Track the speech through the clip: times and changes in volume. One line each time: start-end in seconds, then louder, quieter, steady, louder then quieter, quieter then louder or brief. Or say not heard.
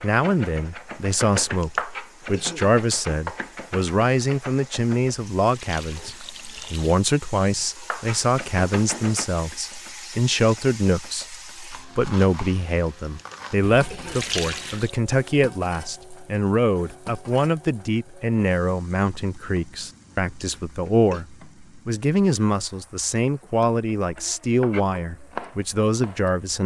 0.0-26.6 steady.